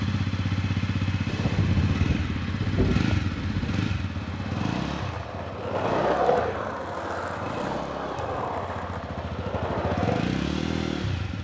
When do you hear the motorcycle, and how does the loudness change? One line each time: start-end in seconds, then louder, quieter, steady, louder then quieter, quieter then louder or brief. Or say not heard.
0.0-11.3 quieter then louder.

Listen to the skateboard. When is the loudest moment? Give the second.
6 s.